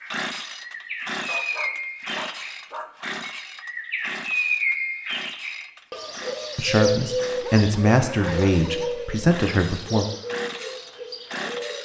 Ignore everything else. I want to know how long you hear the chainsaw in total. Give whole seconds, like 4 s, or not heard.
12 s.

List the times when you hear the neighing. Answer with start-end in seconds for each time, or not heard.
not heard.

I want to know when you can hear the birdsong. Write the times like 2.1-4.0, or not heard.
0.0-11.8.